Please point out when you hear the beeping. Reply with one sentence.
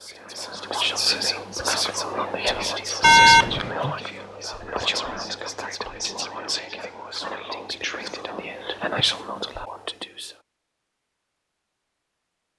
The beeping can be heard from 3.0 to 3.8 s.